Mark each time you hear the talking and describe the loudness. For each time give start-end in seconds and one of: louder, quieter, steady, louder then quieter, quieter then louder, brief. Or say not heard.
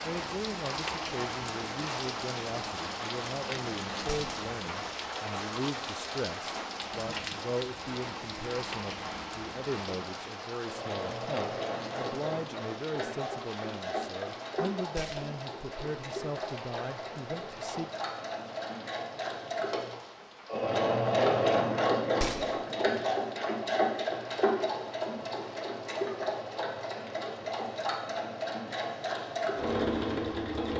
0.0-17.9 steady.